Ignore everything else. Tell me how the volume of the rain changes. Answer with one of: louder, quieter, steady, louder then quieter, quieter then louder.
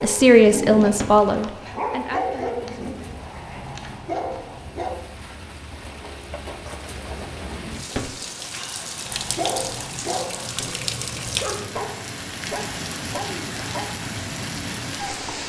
louder.